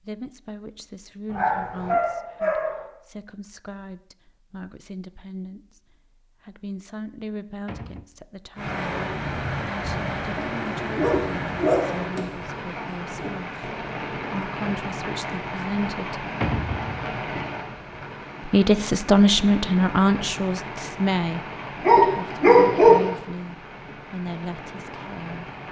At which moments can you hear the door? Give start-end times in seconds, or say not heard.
7.7-8.1, 16.4-17.1.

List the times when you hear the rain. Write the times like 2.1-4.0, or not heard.
8.6-25.6.